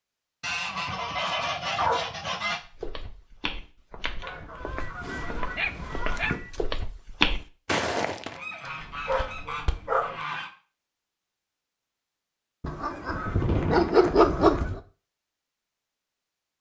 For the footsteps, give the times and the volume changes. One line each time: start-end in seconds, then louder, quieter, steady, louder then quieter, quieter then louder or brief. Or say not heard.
2.6-9.9 louder then quieter.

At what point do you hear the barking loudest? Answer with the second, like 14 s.
14 s.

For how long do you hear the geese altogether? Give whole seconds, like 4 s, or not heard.
9 s.